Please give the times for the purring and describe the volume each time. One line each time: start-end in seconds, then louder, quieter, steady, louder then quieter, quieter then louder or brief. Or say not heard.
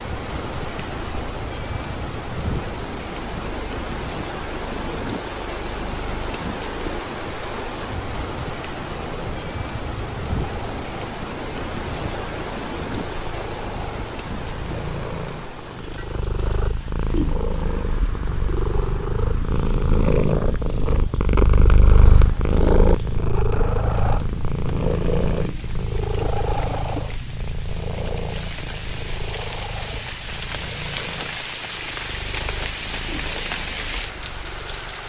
0.2-35.0 louder then quieter.